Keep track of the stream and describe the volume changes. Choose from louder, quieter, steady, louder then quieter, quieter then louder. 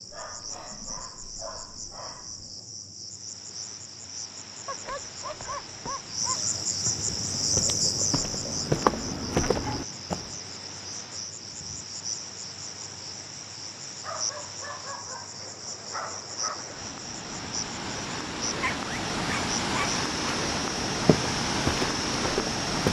louder.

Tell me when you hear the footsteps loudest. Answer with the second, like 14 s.
9 s.